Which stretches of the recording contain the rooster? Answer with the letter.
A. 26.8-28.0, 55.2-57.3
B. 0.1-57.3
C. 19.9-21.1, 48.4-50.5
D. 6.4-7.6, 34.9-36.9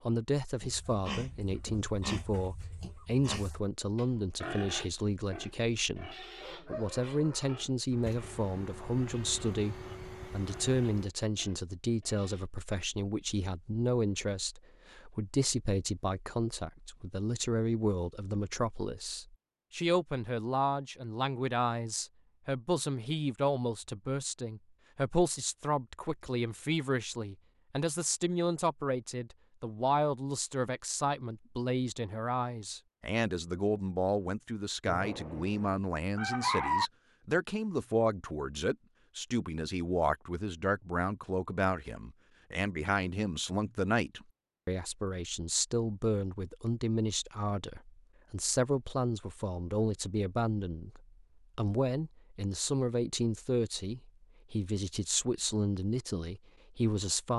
D.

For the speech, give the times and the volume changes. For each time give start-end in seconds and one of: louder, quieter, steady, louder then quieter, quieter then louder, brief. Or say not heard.
0.1-57.3 steady.